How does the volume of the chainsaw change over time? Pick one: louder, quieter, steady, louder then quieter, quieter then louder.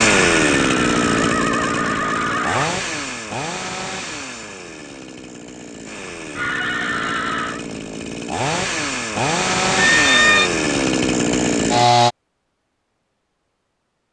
quieter then louder.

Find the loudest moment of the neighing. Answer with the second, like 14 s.
10 s.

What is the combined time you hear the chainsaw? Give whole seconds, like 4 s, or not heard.
12 s.